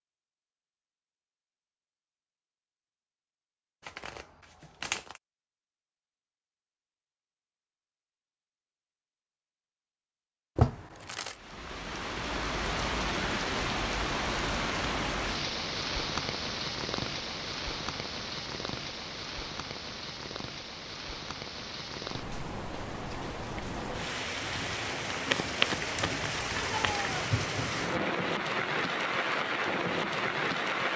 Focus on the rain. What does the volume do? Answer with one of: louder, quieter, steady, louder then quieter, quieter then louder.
quieter then louder.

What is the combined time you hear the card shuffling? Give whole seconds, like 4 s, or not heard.
4 s.